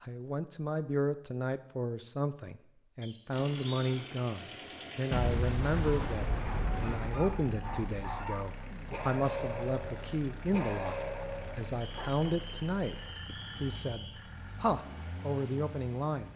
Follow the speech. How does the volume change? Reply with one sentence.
The loudness of the speech stays about the same.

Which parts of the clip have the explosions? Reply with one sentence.
The explosions can be heard from 5.1 to 8.2 s.